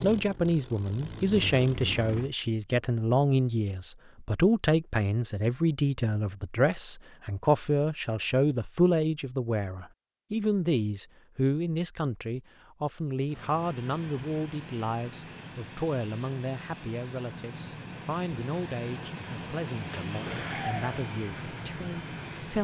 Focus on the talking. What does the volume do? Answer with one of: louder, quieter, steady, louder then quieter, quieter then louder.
quieter.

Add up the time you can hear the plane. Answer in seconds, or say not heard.
12 s.